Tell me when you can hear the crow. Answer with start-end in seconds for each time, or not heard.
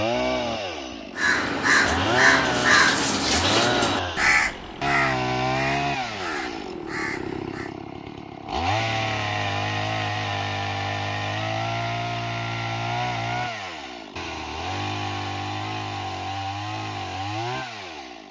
1.1-7.8.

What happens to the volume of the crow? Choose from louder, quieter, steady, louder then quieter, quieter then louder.
quieter.